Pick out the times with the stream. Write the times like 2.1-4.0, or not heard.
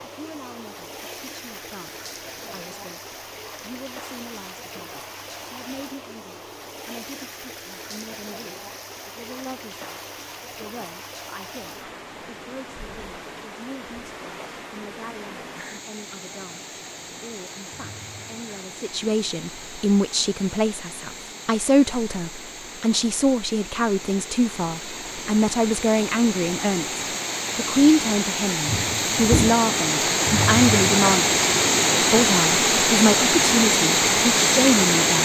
0.0-35.2.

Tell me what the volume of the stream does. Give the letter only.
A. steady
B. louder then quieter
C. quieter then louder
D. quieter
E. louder
E.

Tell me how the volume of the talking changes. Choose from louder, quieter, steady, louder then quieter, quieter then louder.
louder.